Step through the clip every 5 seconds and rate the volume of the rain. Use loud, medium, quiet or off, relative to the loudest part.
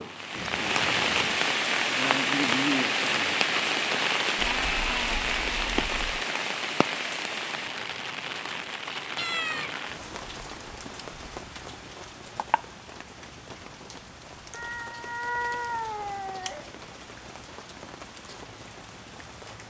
loud, medium, quiet, quiet.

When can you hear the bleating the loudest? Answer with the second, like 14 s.
5 s.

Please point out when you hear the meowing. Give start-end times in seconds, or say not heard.
0.3-1.4, 9.2-9.8, 14.5-16.7.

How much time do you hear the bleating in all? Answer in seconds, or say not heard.
2 s.